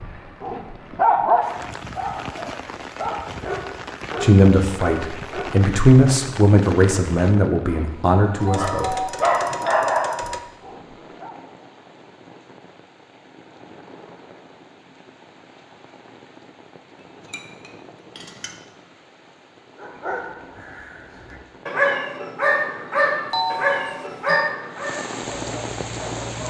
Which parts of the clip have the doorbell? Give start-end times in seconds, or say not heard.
8.4-10.4, 23.3-24.5.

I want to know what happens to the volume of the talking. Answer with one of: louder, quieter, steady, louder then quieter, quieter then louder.
louder then quieter.